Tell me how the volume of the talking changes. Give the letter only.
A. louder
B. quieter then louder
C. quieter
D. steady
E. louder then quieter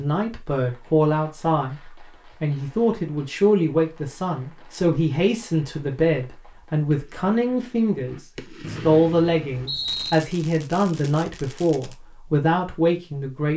D.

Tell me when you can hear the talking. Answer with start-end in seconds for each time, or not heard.
0.0-13.5.